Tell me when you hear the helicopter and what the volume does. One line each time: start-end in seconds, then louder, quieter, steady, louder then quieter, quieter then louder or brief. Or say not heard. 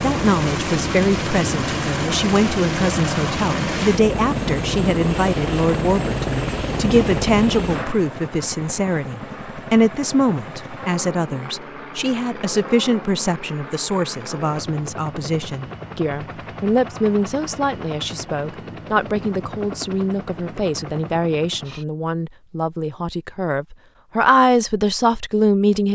0.0-21.9 quieter.